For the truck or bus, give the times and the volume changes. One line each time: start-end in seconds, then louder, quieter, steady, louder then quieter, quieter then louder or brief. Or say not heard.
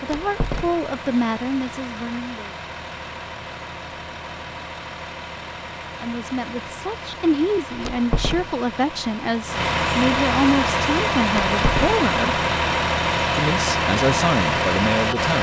0.0-15.3 louder.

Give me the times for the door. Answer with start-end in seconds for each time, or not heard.
0.1-0.9, 7.8-8.5, 11.3-12.0.